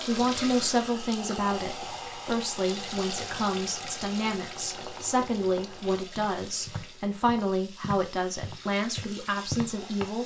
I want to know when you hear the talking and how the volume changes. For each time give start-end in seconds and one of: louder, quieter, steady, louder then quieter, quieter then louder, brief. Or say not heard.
0.0-10.2 steady.